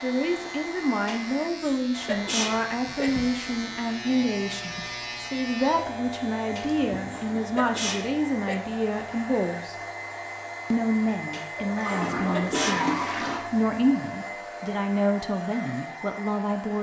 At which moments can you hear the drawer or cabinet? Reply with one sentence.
The drawer or cabinet can't be heard in this clip.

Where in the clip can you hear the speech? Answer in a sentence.
You can hear the speech from 0.0 to 9.8 s and from 10.7 to 16.7 s.